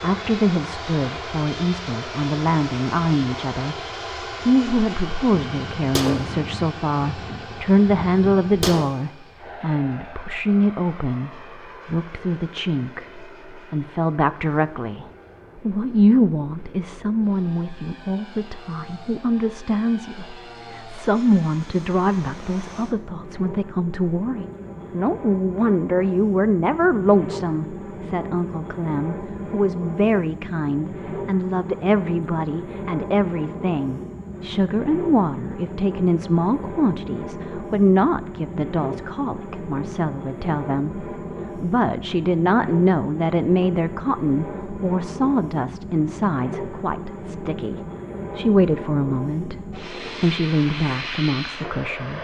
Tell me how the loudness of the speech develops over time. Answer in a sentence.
The volume of the speech stays about the same.